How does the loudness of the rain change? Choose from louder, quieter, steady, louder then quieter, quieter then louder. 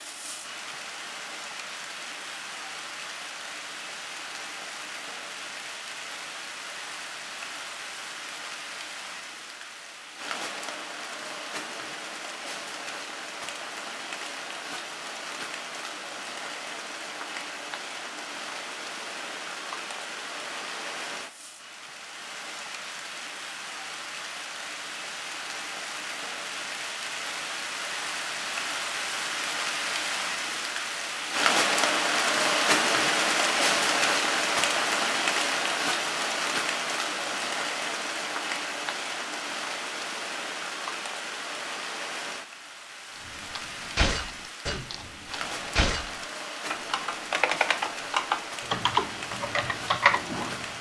louder then quieter.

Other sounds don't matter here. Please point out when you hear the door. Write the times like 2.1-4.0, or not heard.
not heard.